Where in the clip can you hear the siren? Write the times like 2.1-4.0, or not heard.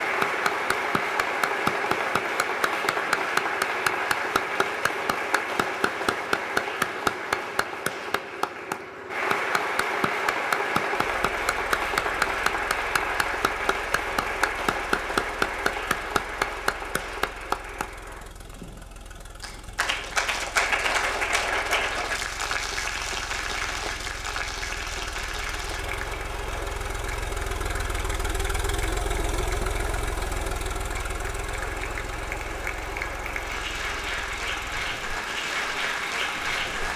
not heard.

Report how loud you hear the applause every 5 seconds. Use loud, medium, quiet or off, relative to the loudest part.
loud, loud, loud, loud, loud, medium, medium, loud.